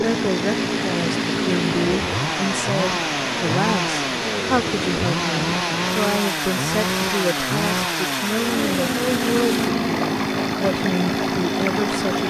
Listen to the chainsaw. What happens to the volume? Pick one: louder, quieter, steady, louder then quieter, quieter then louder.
steady.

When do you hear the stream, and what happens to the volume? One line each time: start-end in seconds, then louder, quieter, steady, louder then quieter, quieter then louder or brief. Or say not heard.
0.0-12.2 steady.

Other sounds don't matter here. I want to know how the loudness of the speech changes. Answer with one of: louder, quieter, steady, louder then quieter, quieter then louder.
steady.